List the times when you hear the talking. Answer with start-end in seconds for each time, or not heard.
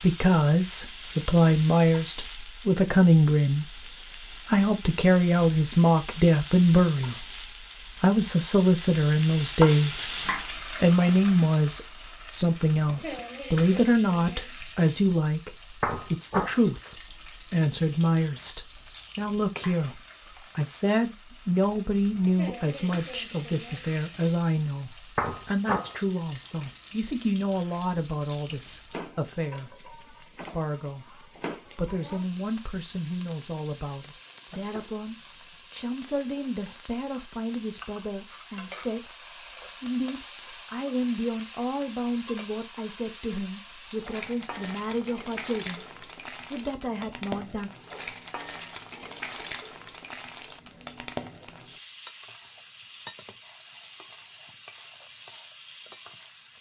0.0-3.8, 4.5-7.2, 8.0-39.1, 39.8-45.9, 46.5-47.7.